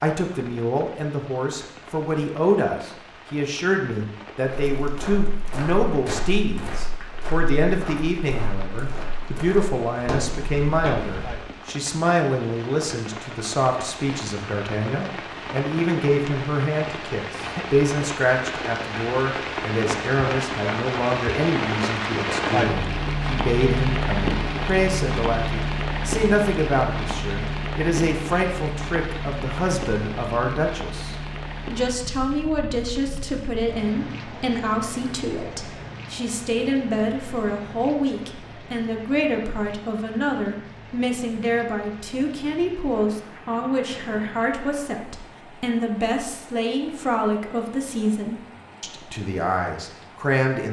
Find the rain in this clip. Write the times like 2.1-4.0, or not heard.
0.1-50.5.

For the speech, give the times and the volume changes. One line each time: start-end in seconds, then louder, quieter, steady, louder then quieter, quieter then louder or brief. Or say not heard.
0.0-50.6 steady.